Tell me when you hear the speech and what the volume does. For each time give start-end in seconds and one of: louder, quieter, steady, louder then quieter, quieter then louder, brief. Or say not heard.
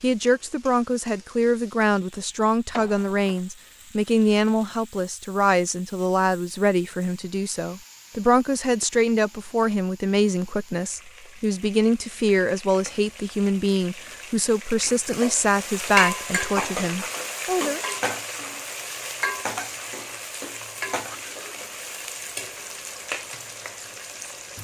0.0-17.8 steady.